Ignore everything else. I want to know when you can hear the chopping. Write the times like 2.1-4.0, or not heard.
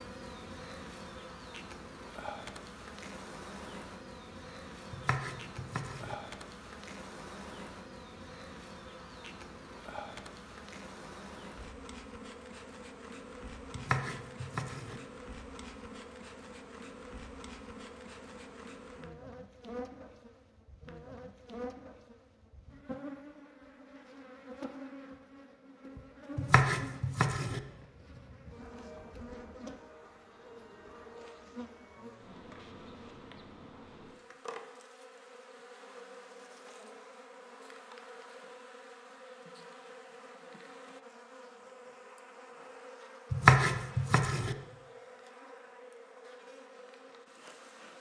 4.9-6.2, 13.8-15.0, 26.4-27.6, 43.3-44.5.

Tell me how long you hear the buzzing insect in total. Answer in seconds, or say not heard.
48 s.